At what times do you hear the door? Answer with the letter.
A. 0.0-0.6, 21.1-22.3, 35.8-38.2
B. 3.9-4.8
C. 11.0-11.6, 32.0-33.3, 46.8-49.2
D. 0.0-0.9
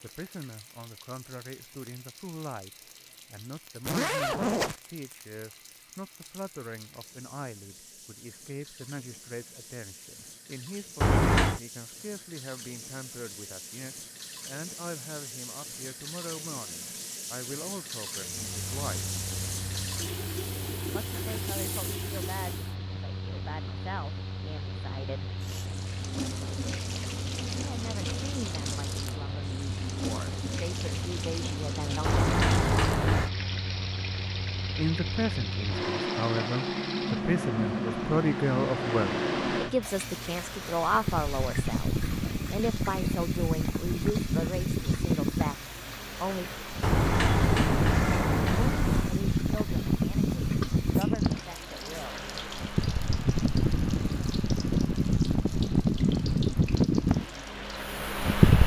C.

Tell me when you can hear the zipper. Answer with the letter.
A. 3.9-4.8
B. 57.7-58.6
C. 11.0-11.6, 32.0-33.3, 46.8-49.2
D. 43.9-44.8
A.